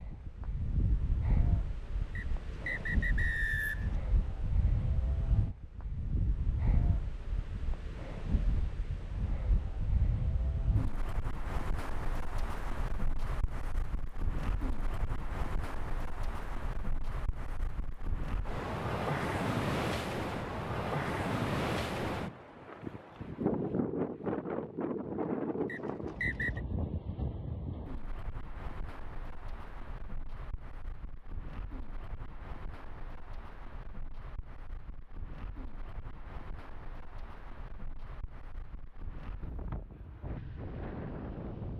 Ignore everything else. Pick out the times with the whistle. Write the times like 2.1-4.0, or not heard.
2.1-4.0, 25.6-26.6.